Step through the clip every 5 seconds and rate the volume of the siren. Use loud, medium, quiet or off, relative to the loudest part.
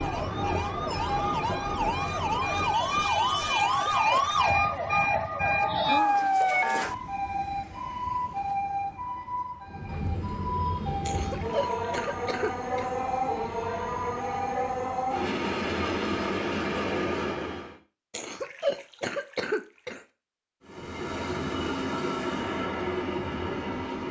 loud, loud, medium, off, off.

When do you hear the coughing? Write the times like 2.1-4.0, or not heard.
3.5-4.5, 11.1-12.9, 18.1-20.0.